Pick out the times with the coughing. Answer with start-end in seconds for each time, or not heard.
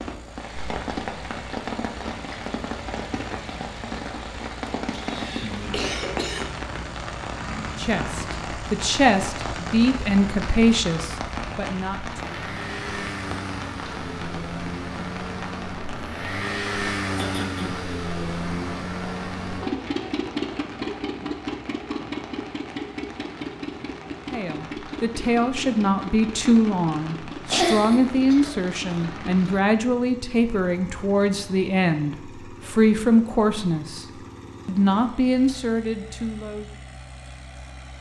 4.9-6.5, 17.1-17.9, 27.5-29.5.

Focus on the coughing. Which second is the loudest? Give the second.
28 s.